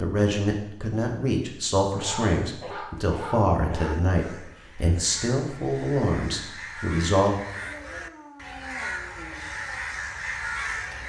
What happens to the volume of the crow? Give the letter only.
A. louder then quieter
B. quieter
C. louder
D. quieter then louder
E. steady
C.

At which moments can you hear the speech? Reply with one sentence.
The speech can be heard from 0.0 to 7.3 s.